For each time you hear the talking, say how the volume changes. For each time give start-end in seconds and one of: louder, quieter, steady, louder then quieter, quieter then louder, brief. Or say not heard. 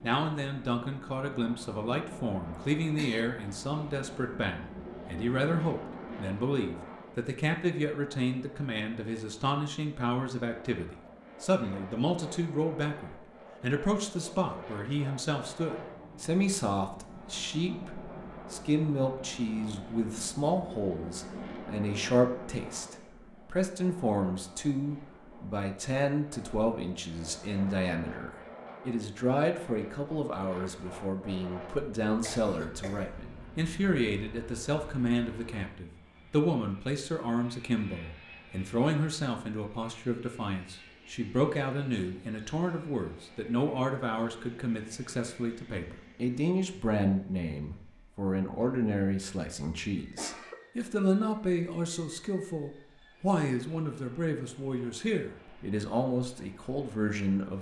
0.0-57.5 steady.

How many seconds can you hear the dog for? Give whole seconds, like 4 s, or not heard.
not heard.